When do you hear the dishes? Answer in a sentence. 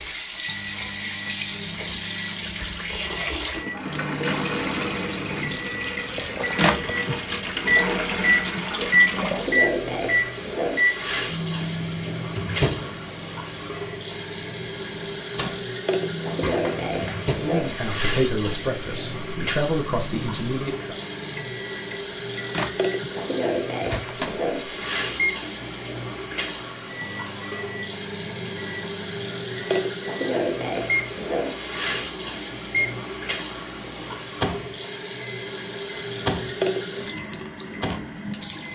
You can't hear the dishes here.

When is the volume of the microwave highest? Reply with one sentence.
The loudest moment of the microwave is at 9 seconds.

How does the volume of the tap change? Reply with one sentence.
The volume of the tap stays about the same.